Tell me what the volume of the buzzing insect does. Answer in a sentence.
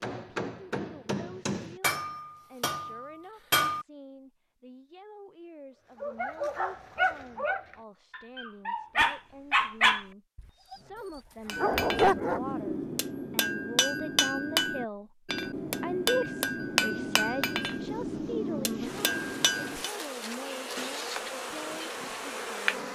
The loudness of the buzzing insect goes up.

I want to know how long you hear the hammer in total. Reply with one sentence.
You can hear the hammer for 12 seconds altogether.